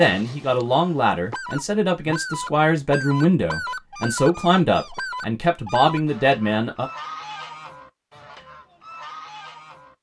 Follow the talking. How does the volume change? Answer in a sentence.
The loudness of the talking stays about the same.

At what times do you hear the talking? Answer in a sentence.
The talking can be heard from 0.0 to 6.9 s.